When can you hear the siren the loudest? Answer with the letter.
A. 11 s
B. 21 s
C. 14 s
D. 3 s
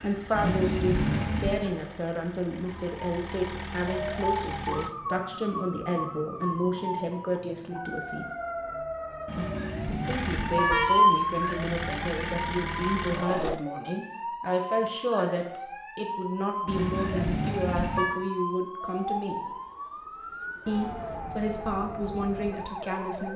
A.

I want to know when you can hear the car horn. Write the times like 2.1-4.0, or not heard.
0.3-1.7, 9.2-11.0, 16.6-18.1.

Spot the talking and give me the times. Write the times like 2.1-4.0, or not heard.
0.0-8.2, 9.8-19.4, 20.6-23.3.